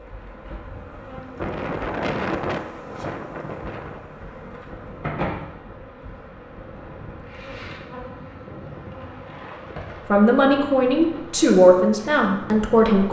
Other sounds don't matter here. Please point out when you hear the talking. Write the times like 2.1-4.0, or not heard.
10.1-13.0.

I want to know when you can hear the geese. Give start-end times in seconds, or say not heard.
not heard.